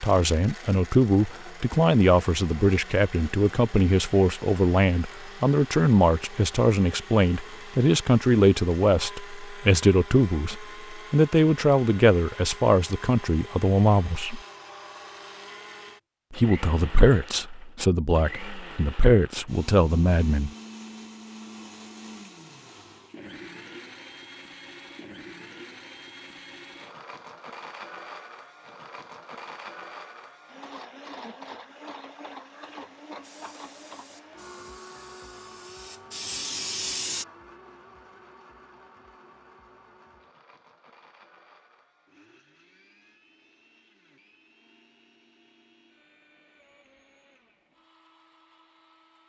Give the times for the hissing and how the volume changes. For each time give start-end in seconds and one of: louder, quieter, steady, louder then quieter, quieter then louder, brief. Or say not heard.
33.2-37.2 louder.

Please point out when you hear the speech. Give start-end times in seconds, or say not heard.
0.0-14.4, 16.3-20.5.